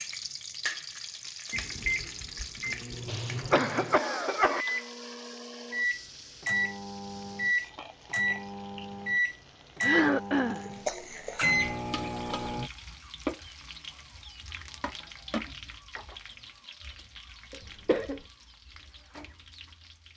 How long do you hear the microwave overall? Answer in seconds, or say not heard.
11 s.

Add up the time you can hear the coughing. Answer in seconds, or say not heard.
3 s.